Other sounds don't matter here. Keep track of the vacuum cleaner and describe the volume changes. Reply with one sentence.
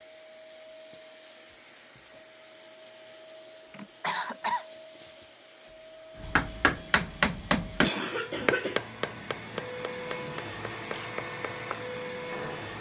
The loudness of the vacuum cleaner goes up.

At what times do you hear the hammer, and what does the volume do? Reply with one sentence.
You can hear the hammer from 6.2 to 12.7 s, getting quieter.